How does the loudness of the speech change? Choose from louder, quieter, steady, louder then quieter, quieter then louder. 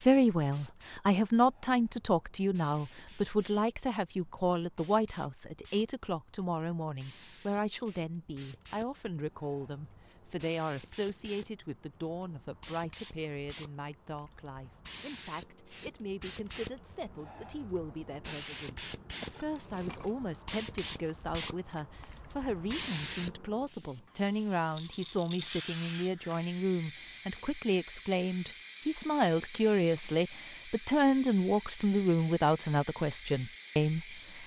quieter then louder.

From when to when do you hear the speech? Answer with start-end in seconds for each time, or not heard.
0.0-34.0.